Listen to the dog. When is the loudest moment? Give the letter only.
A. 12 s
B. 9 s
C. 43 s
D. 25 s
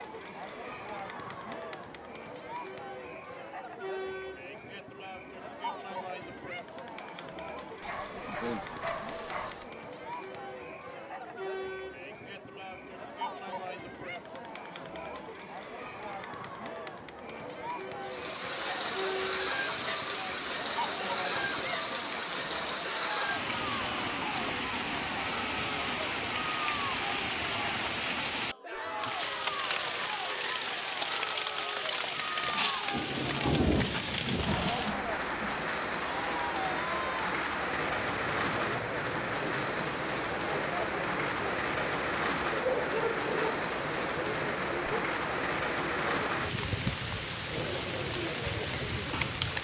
C.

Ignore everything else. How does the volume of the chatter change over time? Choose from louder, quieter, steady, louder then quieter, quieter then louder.
steady.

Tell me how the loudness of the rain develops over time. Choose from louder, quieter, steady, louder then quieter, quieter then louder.
steady.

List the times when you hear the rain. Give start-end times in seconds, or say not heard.
18.0-49.5.